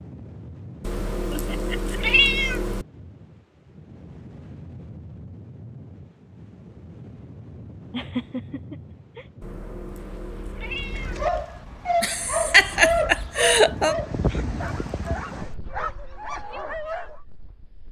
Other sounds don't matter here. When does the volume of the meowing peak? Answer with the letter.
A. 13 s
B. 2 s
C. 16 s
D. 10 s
B.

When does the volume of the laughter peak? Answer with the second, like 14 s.
13 s.